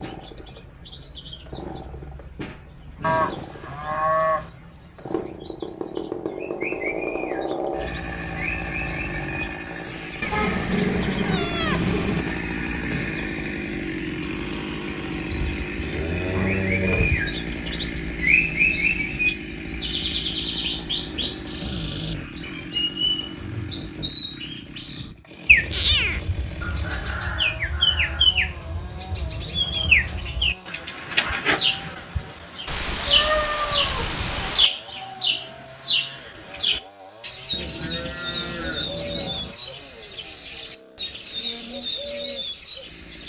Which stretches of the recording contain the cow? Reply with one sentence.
You can hear the cow from 3.0 to 4.5 s, from 15.3 to 17.2 s and from 37.5 to 39.5 s.